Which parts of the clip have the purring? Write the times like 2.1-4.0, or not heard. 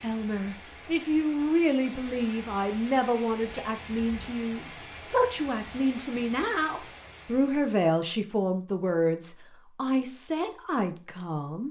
not heard.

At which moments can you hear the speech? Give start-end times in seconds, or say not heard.
0.0-11.6.